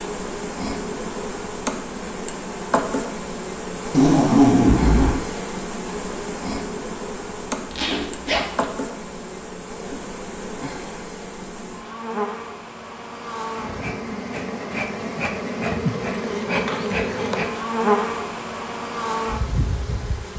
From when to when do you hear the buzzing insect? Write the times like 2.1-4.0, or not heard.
0.0-20.3.